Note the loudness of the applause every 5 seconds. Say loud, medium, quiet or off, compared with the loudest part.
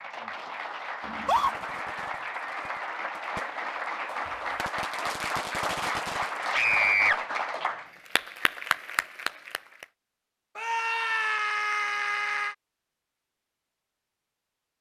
loud, loud, off.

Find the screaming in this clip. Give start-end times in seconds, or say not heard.
1.1-1.6, 6.5-7.2, 10.6-12.6.